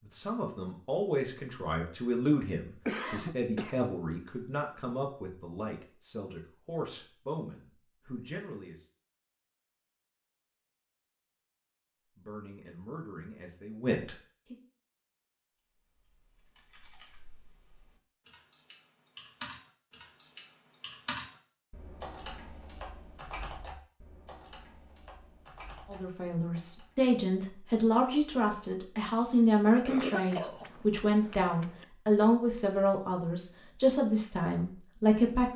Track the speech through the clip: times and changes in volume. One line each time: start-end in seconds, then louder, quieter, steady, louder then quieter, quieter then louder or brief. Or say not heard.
0.0-8.8 quieter
12.2-14.6 brief
25.9-35.5 steady.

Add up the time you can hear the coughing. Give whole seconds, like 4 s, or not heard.
3 s.